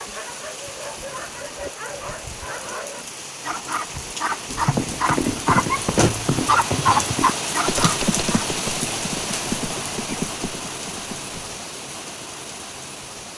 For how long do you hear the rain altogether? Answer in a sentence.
The rain can be heard for 13 seconds in total.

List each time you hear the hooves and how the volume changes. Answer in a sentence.
You can hear the hooves from 4.5 to 11.5 s, getting quieter.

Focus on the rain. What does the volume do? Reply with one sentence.
The volume of the rain goes up, then down.